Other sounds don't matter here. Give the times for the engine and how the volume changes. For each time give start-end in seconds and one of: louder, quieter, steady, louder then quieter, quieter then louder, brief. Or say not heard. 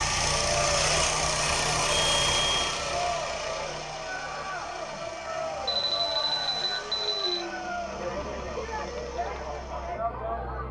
0.0-10.6 quieter.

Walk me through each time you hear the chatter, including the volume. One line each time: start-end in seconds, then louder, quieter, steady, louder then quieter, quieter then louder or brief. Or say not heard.
0.3-10.6 steady.